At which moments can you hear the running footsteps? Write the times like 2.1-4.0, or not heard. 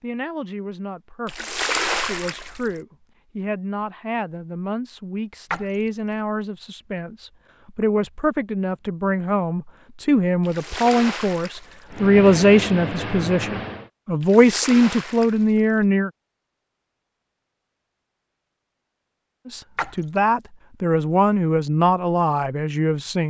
not heard.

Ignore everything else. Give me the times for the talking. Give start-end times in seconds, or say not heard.
0.0-16.1, 19.4-23.2.